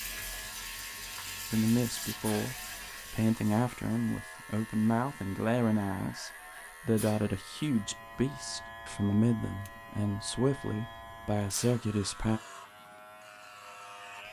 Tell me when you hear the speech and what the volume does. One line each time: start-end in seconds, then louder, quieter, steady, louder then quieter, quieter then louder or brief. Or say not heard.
1.5-12.4 steady.